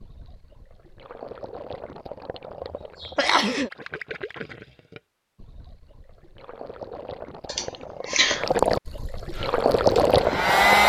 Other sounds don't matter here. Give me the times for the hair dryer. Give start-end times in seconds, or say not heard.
9.3-10.8.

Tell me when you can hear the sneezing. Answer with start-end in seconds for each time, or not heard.
2.7-3.7, 7.5-8.4.